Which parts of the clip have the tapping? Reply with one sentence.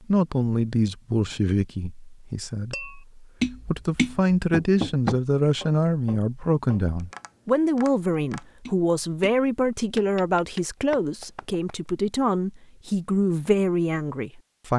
The tapping can be heard from 2.7 to 11.6 s.